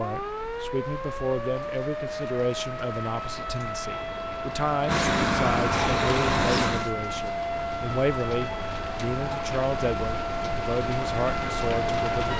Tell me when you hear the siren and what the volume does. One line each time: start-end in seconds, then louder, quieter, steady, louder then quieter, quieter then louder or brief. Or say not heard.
0.0-12.3 steady.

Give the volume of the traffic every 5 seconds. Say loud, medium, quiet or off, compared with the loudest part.
quiet, loud, off.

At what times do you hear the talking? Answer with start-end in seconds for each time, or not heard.
0.0-12.3.